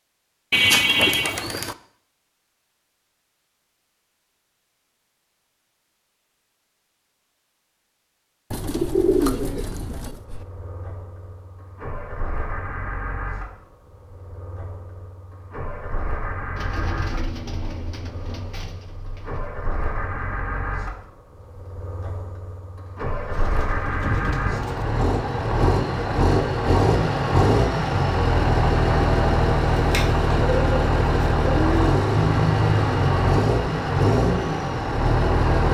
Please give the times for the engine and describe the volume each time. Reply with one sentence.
You can hear the engine from 10.1 to 35.6 s, getting louder.